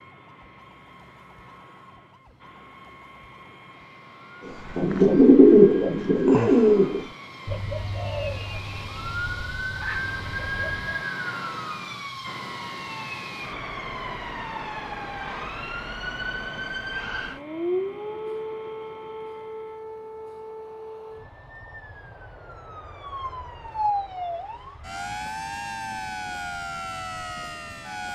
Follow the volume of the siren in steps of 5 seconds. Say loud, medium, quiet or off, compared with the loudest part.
quiet, medium, loud, loud, loud, loud.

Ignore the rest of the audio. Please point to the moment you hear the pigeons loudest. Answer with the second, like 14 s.
5 s.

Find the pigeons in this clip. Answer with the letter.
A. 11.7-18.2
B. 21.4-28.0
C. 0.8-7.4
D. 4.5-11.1
D.